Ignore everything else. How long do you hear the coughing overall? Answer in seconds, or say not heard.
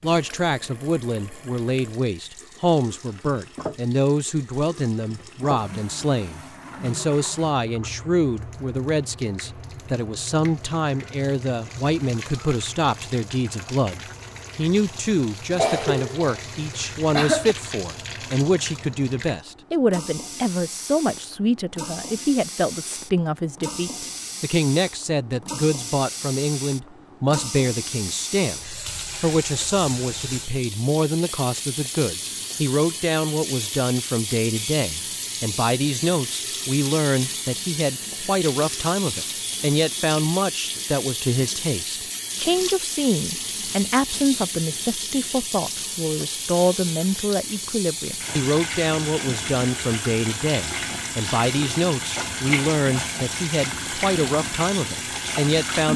2 s.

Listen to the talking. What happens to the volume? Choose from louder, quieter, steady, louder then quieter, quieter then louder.
steady.